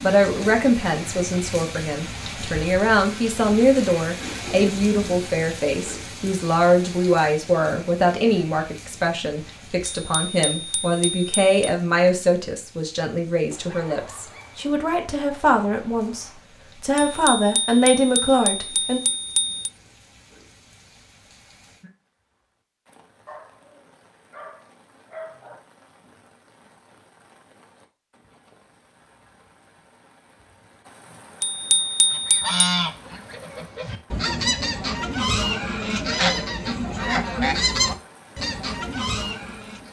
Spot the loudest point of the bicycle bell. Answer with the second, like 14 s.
32 s.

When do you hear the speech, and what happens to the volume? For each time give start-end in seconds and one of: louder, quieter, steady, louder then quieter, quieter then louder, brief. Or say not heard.
0.0-19.0 steady.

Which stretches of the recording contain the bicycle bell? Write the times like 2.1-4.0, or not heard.
9.9-11.8, 16.9-19.7, 31.4-32.5.